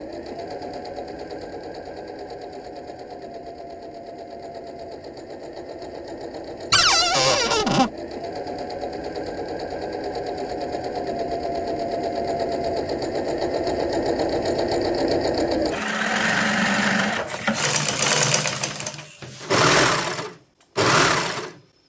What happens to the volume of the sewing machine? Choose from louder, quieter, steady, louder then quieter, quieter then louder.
louder.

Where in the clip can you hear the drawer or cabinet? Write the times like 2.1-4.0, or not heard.
6.7-7.9.